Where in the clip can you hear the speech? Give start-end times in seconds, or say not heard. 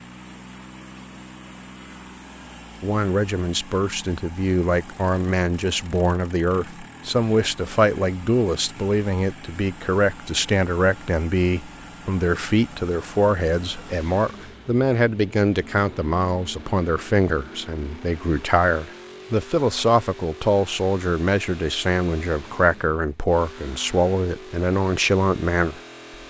2.8-25.8.